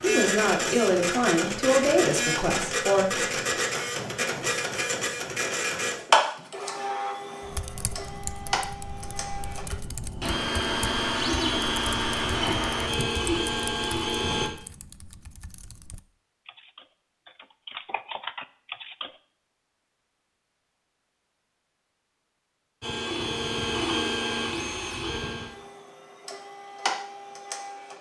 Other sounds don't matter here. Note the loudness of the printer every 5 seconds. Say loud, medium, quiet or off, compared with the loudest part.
loud, loud, loud, off, loud, medium.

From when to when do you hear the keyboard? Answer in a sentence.
The keyboard can be heard from 7.4 to 19.1 s.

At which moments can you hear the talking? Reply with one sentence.
The talking can be heard from 0.0 to 3.2 s.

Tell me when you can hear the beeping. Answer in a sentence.
You can't hear the beeping here.